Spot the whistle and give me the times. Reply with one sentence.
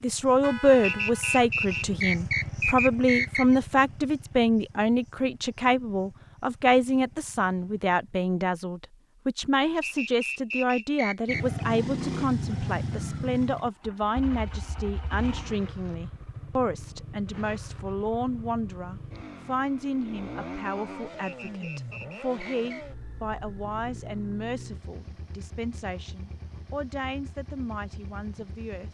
You can hear the whistle from 0.8 to 3.5 s, from 9.8 to 11.4 s and from 21.2 to 22.9 s.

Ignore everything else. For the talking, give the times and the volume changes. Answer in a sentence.
You can hear the talking from 0.0 to 28.8 s, getting quieter.